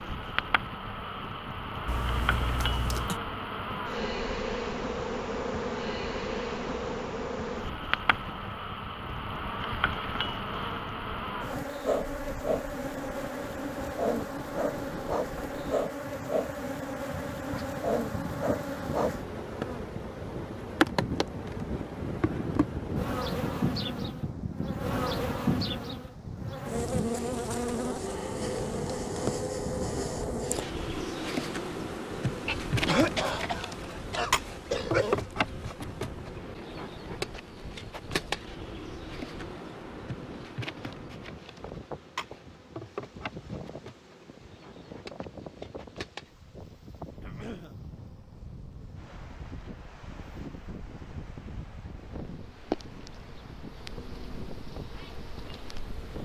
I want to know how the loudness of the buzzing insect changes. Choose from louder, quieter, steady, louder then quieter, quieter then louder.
quieter.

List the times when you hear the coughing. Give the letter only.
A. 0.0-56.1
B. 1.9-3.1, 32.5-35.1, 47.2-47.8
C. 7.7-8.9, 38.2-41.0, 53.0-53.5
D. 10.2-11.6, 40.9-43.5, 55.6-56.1
B.